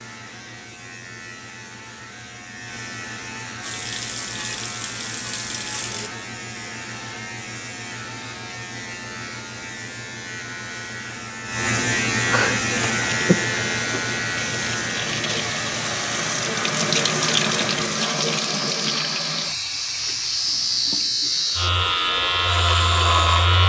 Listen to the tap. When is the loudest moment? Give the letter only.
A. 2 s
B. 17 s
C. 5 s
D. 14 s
B.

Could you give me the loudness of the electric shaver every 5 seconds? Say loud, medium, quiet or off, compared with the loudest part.
quiet, quiet, loud, medium, loud.